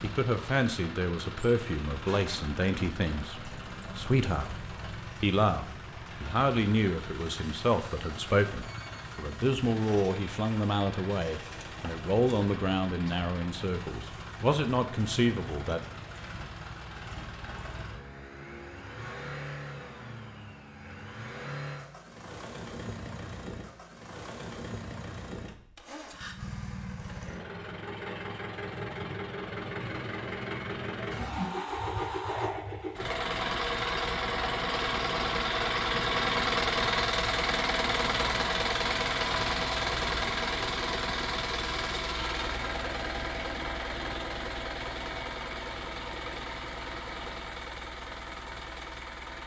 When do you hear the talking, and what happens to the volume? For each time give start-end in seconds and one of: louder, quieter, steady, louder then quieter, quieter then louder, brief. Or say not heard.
0.0-15.8 steady.